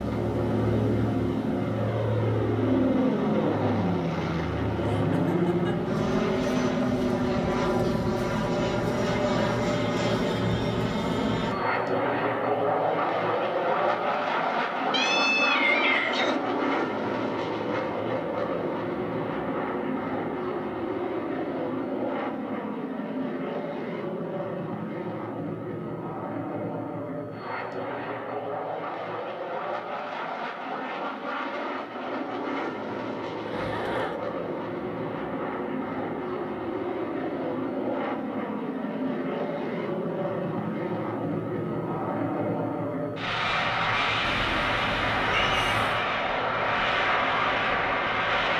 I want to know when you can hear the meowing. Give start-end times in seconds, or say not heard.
14.9-16.4, 44.2-46.0.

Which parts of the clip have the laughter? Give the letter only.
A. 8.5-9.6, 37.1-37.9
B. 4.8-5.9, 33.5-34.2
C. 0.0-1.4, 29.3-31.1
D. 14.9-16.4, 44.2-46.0
B.